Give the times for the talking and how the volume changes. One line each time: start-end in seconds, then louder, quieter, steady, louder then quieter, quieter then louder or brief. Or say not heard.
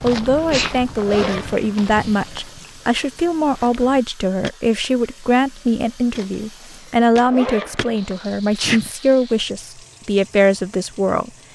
0.0-11.3 steady.